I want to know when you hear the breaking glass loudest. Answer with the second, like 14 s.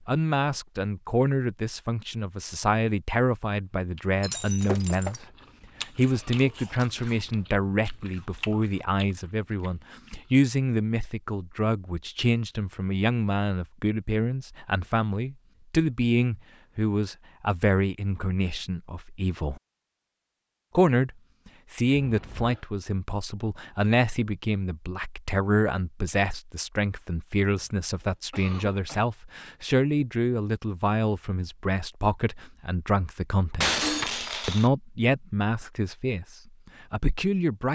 34 s.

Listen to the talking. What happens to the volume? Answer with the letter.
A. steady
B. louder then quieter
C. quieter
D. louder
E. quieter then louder
A.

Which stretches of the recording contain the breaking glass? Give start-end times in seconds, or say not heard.
4.2-5.2, 33.6-34.7.